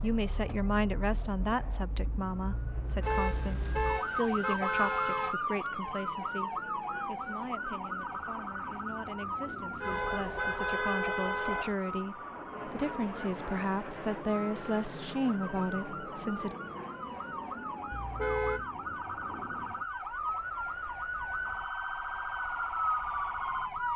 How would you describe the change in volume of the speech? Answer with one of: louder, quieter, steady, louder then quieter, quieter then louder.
quieter then louder.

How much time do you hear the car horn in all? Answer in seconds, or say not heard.
5 s.